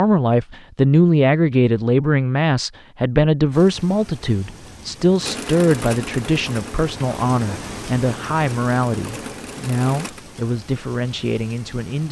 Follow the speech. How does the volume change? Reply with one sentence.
The loudness of the speech goes down.